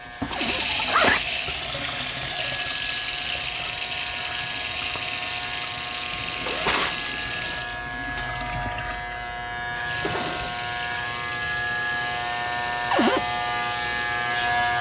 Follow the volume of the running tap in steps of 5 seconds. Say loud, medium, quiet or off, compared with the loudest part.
loud, medium, medium.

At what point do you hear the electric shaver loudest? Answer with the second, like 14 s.
14 s.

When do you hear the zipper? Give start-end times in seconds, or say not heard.
0.2-1.2, 6.1-7.6, 10.0-10.7.